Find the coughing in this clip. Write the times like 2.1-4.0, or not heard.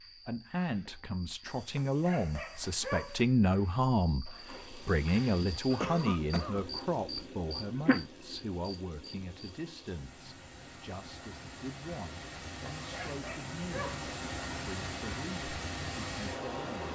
5.8-6.7.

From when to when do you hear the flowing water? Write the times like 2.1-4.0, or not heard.
4.3-16.9.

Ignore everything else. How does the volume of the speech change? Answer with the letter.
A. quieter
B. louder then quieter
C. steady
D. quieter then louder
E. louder
A.